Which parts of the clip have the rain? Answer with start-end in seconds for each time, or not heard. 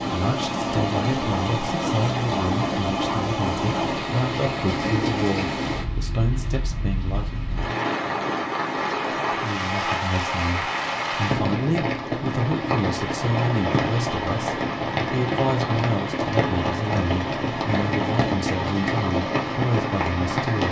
0.0-20.6.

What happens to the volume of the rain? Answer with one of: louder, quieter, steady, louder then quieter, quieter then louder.
steady.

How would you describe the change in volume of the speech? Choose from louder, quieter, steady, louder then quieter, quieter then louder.
steady.